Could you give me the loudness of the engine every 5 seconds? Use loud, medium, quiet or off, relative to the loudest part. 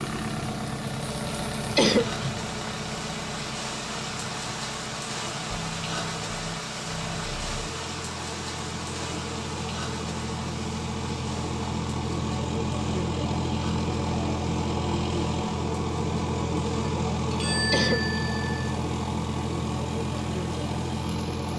medium, medium, loud, loud, loud.